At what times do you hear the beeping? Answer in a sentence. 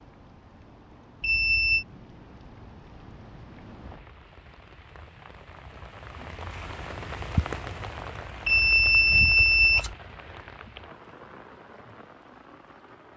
The beeping can be heard from 1.2 to 1.9 s and from 8.4 to 9.9 s.